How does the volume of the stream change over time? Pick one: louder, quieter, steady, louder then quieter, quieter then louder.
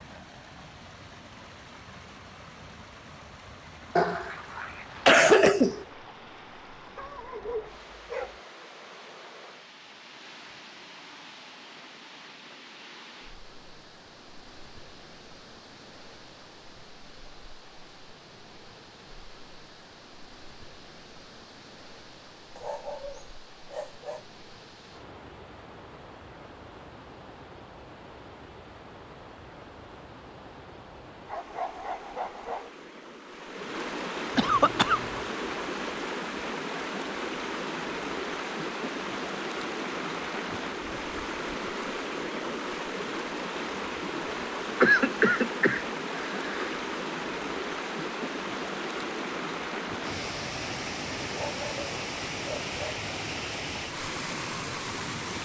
louder.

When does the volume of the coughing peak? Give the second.
5 s.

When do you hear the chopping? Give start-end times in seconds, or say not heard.
not heard.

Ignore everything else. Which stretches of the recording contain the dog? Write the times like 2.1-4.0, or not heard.
7.0-8.4, 22.6-24.2, 31.2-32.7, 51.2-53.0.